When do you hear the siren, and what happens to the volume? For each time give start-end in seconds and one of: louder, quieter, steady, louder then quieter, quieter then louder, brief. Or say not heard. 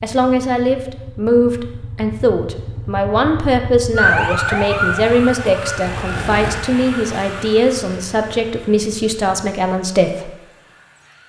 4.0-11.2 quieter.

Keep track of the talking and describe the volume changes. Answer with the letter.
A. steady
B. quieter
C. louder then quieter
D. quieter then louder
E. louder
A.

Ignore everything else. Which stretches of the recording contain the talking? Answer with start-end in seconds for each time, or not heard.
0.0-10.3.